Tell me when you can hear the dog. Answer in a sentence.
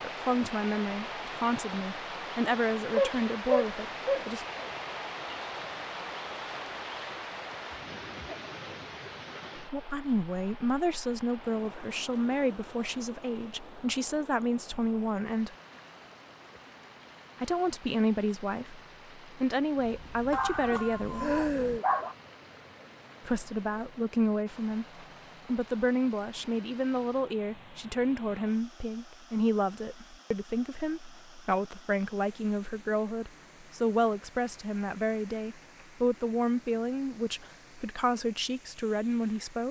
The dog can be heard from 2.9 to 4.7 s and from 20.3 to 22.1 s.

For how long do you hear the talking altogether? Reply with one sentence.
The talking can be heard for 31 seconds in total.